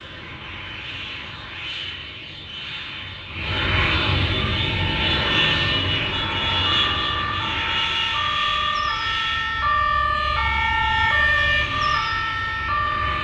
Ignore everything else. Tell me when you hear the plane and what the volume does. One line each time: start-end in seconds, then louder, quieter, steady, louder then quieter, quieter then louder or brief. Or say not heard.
0.0-13.1 louder then quieter.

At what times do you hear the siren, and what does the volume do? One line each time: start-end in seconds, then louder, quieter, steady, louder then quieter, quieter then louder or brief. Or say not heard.
4.4-13.1 louder.